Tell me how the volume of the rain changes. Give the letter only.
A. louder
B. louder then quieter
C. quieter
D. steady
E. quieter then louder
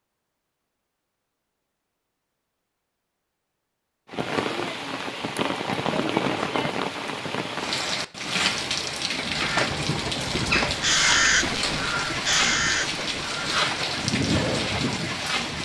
D.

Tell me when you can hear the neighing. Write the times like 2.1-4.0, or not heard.
not heard.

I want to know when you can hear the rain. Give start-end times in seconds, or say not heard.
4.1-15.6.